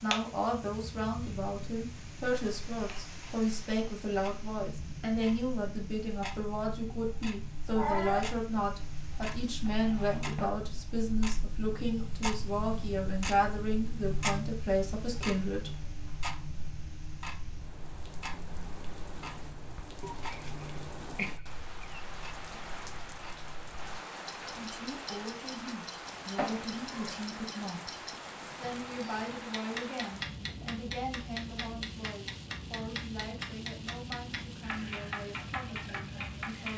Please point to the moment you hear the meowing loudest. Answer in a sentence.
The loudest moment of the meowing is at 8 seconds.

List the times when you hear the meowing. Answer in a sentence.
The meowing can be heard from 7.8 to 8.2 s, from 20.0 to 22.0 s and from 26.4 to 27.2 s.